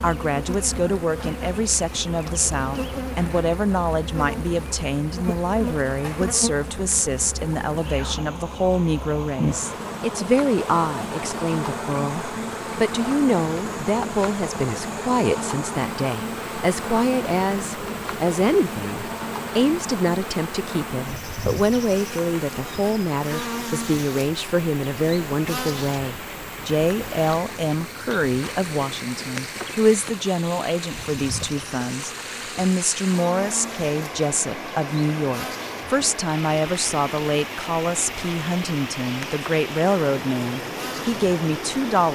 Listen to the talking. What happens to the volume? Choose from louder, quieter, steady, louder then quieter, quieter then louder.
steady.